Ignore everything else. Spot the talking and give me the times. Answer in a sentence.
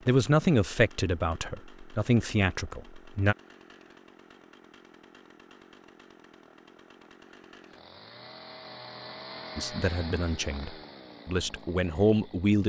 The talking can be heard from 0.1 to 3.4 s and from 9.6 to 12.6 s.